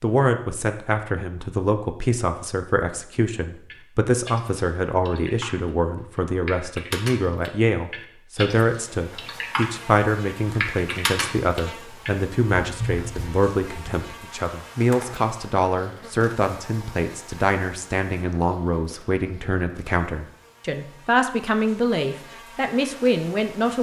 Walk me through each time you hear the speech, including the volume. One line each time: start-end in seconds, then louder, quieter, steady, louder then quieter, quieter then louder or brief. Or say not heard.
0.0-23.7 steady.